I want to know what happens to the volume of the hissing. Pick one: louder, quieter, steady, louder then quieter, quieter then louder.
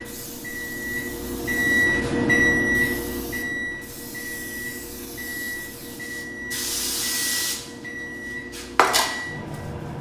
louder.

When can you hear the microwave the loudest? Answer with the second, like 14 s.
2 s.